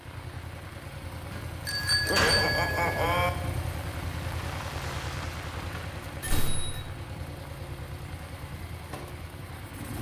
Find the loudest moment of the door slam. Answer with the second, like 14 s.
2 s.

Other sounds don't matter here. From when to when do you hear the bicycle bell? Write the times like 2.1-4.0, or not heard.
1.6-3.3, 5.5-6.8.